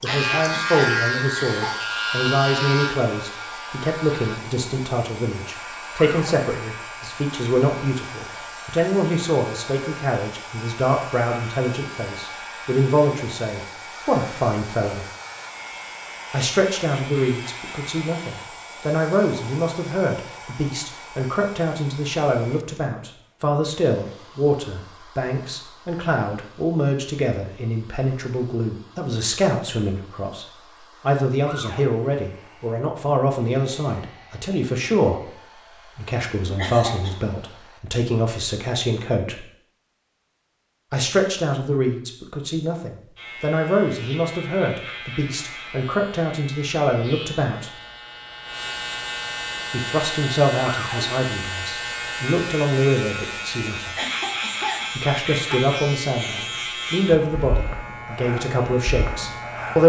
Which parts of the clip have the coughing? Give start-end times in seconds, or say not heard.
0.1-1.8, 36.5-37.1, 54.0-55.6.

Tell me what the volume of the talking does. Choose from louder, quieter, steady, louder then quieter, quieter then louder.
steady.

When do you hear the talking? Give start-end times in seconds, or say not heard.
0.0-15.1, 16.3-39.4, 40.9-47.7, 49.7-54.0, 55.0-59.8.